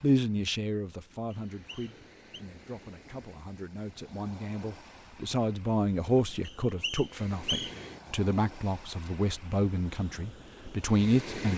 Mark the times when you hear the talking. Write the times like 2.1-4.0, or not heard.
0.0-11.5.